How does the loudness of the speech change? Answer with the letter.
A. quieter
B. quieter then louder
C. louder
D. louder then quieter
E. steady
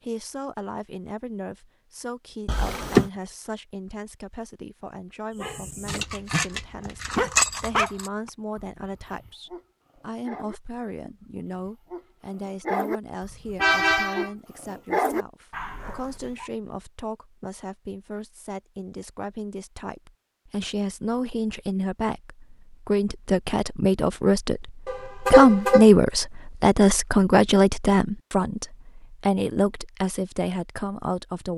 C.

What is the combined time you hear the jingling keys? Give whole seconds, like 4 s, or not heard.
2 s.